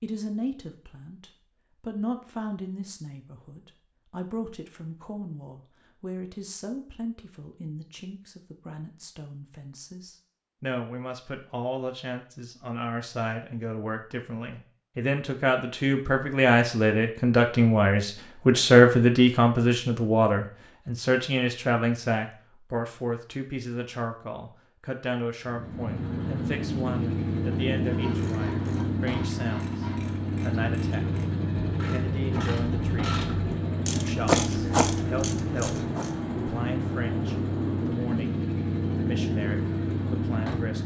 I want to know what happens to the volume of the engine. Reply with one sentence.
The volume of the engine stays about the same.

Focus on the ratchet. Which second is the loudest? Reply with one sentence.
The volume of the ratchet peaks at 34 seconds.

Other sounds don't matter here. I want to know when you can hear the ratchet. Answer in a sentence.
You can hear the ratchet from 28.1 to 36.1 s.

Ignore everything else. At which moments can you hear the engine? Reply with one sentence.
You can hear the engine from 25.4 to 40.8 s.